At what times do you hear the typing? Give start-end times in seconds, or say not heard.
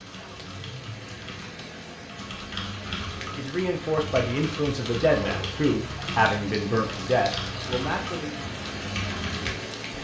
0.0-10.0.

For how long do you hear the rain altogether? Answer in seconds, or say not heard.
10 s.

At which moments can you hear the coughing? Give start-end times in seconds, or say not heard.
not heard.